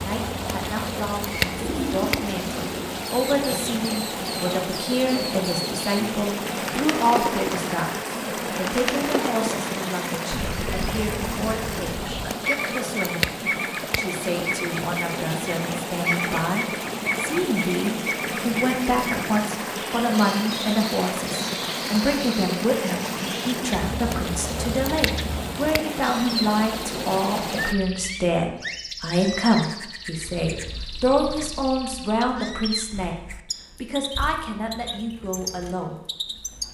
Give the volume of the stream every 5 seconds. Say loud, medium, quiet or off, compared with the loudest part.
loud, loud, loud, loud, loud, loud, off, off.